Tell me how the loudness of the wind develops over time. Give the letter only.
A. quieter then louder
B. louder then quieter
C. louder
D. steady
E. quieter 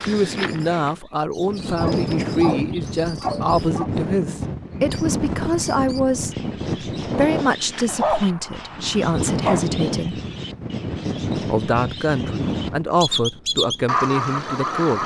D.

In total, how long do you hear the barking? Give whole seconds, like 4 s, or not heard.
4 s.